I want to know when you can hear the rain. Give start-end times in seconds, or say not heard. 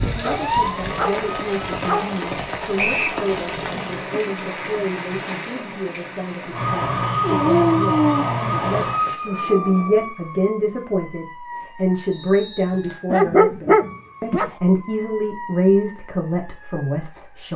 0.0-9.2.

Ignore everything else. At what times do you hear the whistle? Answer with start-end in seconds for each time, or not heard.
2.8-3.2, 12.1-13.0.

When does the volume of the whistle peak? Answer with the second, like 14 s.
3 s.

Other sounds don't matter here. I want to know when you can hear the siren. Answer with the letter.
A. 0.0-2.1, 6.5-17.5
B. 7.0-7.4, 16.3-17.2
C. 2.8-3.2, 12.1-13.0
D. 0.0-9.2
A.